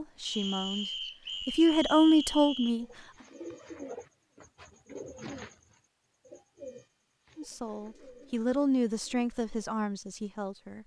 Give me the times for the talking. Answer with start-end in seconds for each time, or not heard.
0.0-3.1, 7.3-10.8.